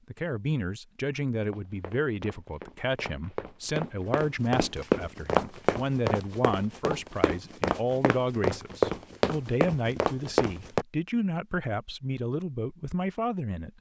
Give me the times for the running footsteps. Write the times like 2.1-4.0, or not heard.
1.4-10.8.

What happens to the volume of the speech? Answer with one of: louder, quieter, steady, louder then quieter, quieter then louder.
steady.